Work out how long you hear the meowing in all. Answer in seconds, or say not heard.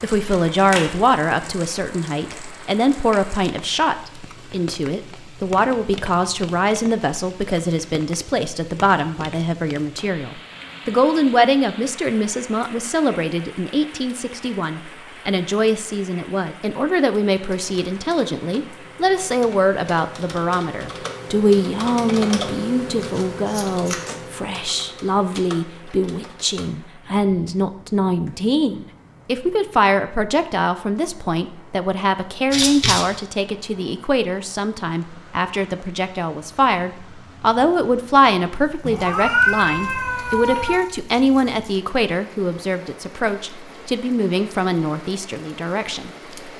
2 s.